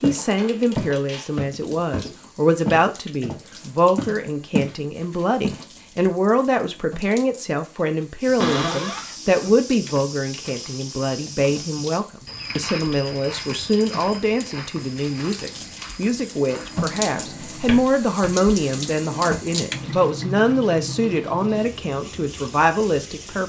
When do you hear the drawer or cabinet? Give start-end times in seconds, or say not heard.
0.3-1.4, 8.3-9.1, 17.0-18.4.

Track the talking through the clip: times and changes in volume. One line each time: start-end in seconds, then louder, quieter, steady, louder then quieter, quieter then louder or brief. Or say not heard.
0.0-23.4 steady.